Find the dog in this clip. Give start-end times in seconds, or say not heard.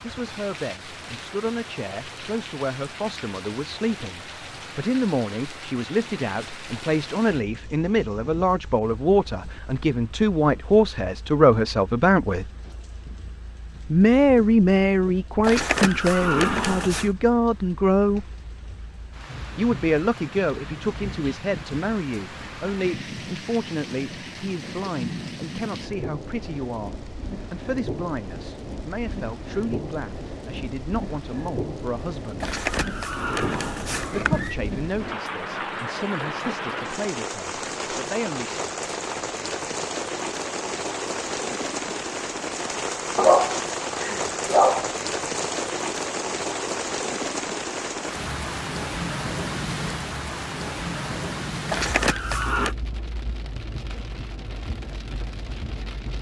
43.1-44.9.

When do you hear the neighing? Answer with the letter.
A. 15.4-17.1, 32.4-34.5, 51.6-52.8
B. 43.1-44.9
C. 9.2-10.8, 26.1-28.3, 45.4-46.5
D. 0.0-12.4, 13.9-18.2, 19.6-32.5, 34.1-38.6
A.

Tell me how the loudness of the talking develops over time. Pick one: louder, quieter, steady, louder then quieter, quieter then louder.
louder then quieter.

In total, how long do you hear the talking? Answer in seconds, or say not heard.
34 s.